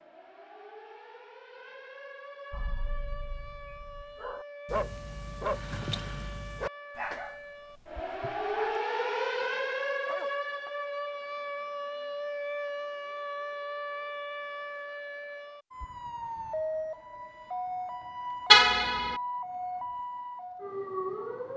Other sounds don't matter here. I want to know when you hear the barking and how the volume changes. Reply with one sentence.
You can hear the barking from 2.5 to 9.4 s, getting louder then quieter; and briefly from 10.1 to 10.7 s.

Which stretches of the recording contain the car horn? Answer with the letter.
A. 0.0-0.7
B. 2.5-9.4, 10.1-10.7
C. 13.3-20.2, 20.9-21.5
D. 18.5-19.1
D.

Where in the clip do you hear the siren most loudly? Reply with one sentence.
The loudest moment of the siren is at 9 seconds.